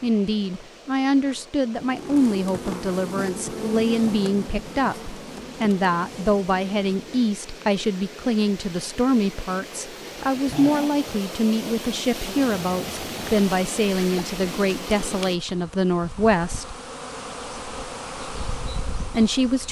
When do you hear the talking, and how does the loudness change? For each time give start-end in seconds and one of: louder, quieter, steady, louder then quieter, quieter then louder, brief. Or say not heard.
0.0-16.8 steady
19.1-19.6 brief.